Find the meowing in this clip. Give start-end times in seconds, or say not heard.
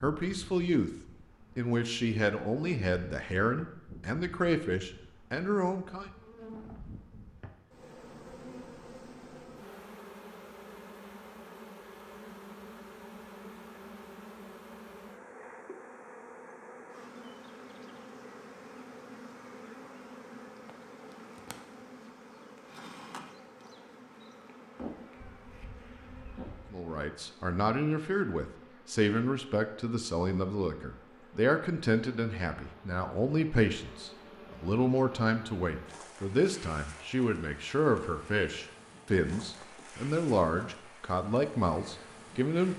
24.8-26.8.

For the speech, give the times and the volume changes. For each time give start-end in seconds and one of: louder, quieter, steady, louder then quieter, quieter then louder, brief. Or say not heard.
0.0-0.9 brief
1.6-6.1 steady
26.7-42.7 steady.